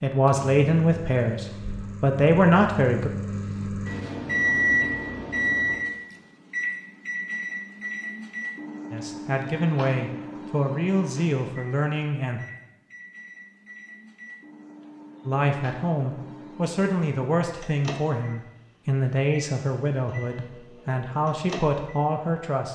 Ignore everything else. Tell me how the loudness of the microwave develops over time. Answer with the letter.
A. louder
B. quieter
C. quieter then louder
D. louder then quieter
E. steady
B.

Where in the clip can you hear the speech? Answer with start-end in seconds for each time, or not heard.
0.0-3.1, 8.9-12.4, 15.2-22.6.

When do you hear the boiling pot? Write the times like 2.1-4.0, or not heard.
not heard.